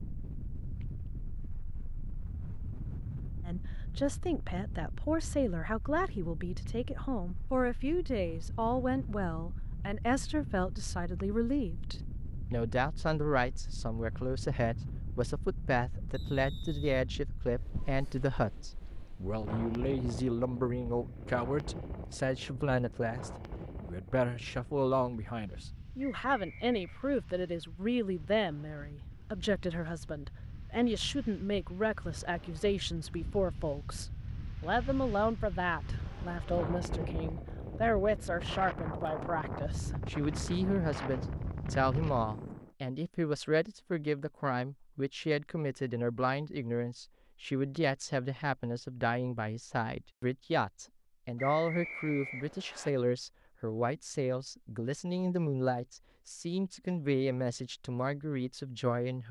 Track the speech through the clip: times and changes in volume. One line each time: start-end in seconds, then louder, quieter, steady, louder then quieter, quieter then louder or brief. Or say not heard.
3.5-59.2 steady.